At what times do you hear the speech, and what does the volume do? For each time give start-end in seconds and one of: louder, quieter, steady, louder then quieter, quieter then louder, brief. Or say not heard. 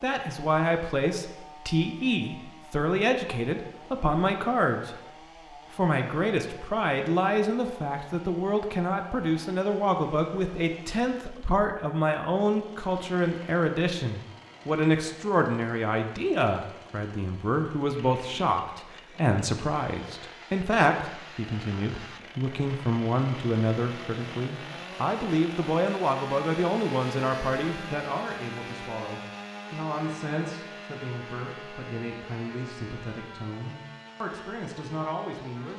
0.0-35.7 quieter.